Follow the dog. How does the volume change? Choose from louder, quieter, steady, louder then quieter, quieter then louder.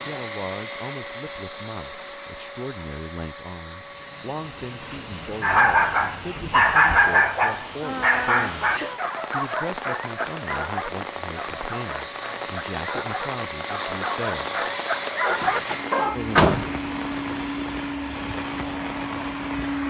quieter then louder.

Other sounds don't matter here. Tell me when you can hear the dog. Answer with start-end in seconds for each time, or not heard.
5.4-16.2.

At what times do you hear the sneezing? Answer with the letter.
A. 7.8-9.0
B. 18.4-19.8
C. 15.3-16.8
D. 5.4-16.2
A.